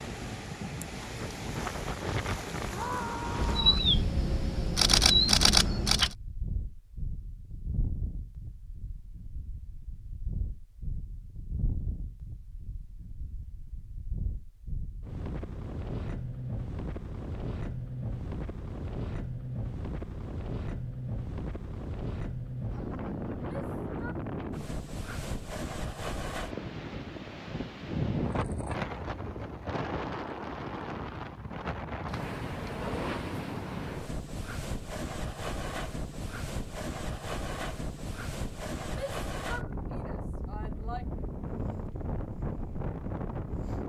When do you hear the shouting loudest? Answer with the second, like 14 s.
3 s.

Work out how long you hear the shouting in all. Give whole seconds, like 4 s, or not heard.
4 s.